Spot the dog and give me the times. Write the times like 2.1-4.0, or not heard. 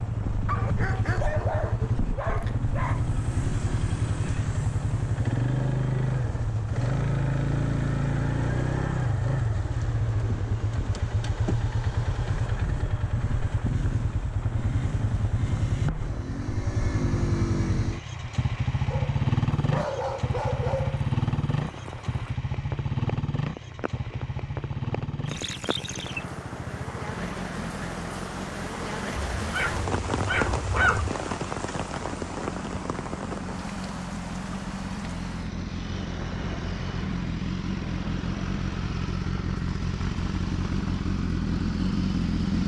0.5-3.0, 18.9-21.1, 29.4-31.1.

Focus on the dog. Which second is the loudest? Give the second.
31 s.